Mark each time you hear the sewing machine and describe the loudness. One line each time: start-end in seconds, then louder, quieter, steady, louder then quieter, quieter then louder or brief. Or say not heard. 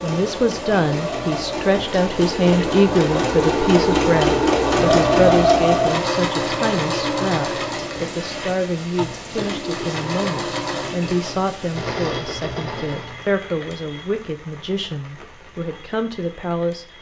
0.0-13.2 louder then quieter.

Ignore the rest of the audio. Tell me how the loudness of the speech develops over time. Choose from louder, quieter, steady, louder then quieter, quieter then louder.
quieter.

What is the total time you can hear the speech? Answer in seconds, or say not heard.
17 s.